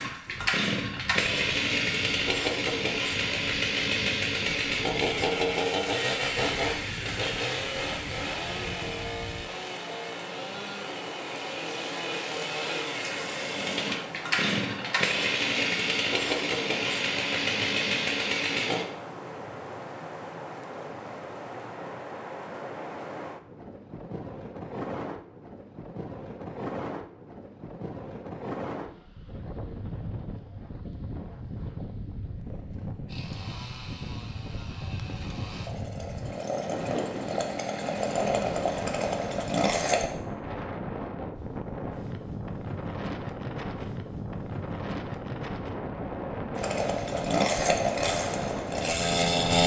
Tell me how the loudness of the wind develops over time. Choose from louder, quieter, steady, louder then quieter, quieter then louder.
louder.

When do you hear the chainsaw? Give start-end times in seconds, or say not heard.
0.0-18.9, 33.0-40.1, 46.5-49.6.